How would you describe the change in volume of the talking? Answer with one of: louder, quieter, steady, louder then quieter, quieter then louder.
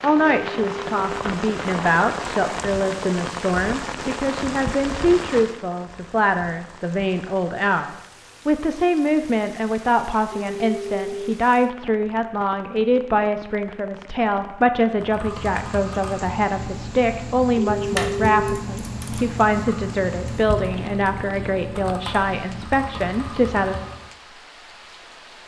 steady.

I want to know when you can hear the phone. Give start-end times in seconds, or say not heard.
0.2-1.1, 10.3-11.3, 17.6-18.6.